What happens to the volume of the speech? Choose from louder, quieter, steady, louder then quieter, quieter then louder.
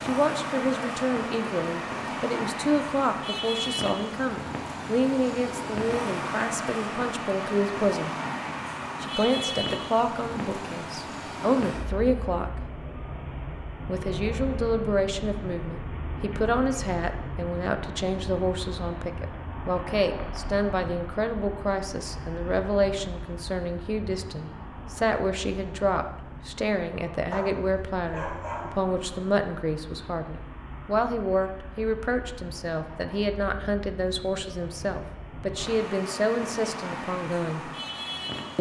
steady.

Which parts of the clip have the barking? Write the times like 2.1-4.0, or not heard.
27.3-28.9.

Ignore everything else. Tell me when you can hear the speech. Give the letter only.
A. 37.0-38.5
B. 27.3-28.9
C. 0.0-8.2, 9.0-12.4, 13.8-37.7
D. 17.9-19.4
C.